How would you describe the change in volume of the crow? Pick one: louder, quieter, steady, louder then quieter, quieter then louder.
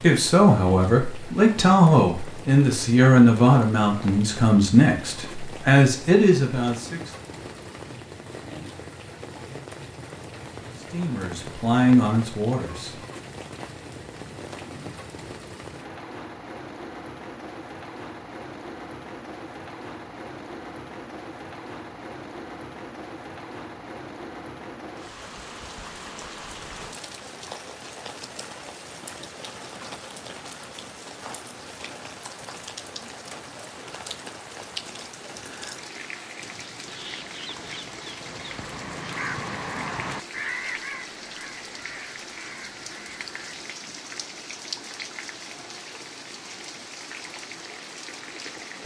louder then quieter.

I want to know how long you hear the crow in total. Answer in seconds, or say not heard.
7 s.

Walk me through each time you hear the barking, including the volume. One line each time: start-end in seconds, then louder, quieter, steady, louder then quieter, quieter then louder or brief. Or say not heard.
not heard.